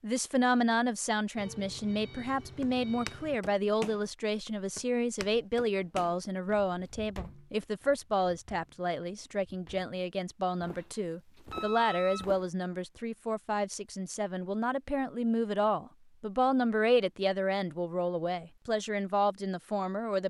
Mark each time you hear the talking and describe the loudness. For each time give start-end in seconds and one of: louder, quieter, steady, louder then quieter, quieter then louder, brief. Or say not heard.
0.0-20.2 steady.